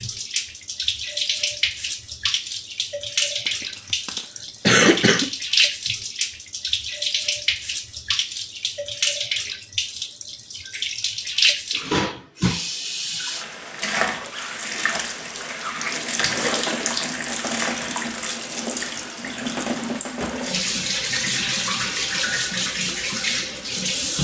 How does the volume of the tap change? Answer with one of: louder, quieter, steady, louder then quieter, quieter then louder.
steady.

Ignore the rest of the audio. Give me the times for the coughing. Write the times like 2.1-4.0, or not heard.
3.5-5.3.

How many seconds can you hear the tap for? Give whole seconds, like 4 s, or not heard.
24 s.